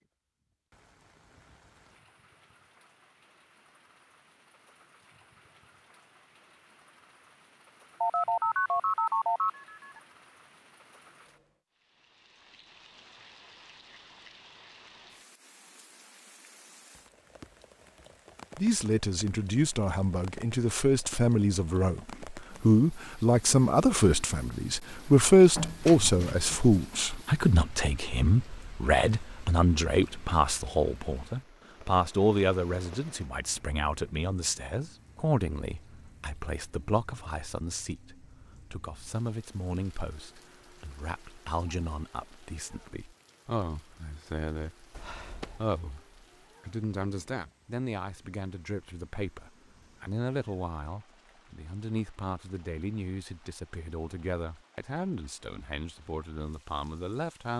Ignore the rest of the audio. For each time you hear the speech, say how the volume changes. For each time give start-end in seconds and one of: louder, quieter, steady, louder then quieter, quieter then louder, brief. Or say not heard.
18.6-57.5 quieter.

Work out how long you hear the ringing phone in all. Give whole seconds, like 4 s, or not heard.
4 s.